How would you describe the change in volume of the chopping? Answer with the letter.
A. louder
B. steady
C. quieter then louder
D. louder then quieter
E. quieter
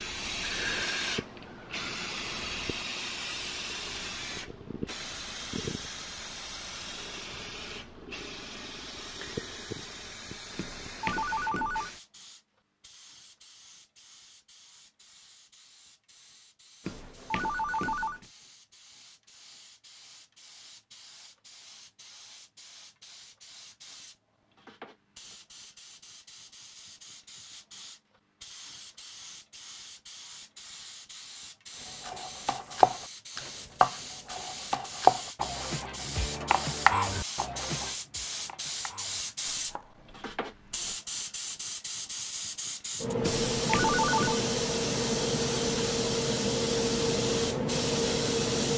E.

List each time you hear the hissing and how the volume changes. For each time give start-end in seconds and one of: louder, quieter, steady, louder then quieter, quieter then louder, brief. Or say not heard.
0.0-48.7 quieter then louder.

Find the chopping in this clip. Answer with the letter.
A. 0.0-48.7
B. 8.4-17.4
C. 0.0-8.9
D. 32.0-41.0
D.